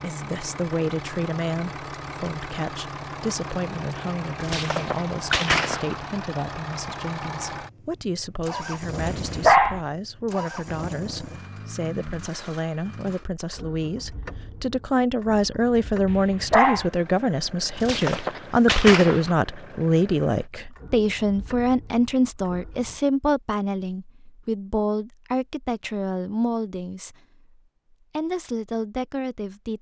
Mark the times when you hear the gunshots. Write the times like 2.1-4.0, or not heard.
4.4-6.0, 17.8-19.4.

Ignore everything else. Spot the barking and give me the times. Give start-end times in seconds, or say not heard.
9.0-9.8, 16.1-16.9.